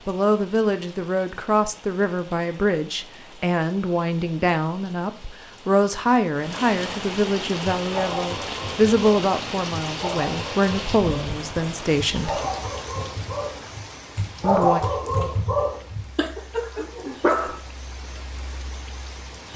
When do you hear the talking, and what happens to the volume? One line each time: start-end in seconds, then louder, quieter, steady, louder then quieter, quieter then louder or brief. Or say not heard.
0.1-12.4 steady
14.4-14.8 brief.